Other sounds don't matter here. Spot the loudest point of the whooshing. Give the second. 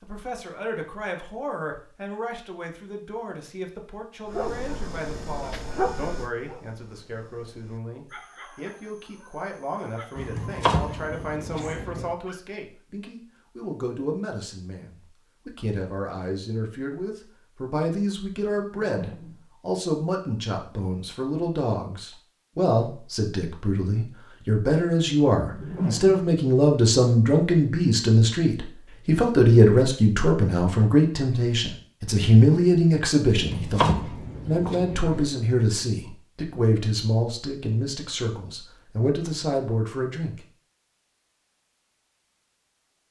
26 s.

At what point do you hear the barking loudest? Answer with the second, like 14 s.
6 s.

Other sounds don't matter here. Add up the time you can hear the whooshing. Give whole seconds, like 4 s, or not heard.
2 s.